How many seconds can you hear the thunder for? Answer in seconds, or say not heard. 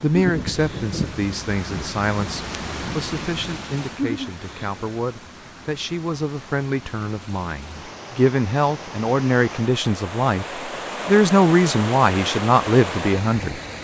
3 s.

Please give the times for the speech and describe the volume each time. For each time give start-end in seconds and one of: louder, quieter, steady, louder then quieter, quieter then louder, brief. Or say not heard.
0.0-13.6 louder.